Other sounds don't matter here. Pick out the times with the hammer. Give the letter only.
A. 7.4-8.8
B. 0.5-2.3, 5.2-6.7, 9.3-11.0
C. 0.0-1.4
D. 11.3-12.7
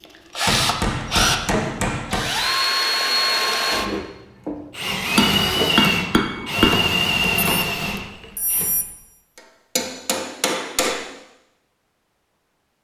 B.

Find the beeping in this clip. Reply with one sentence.
The beeping can be heard from 7.4 to 8.8 s.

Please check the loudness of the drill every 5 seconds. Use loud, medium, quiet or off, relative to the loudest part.
loud, loud, off.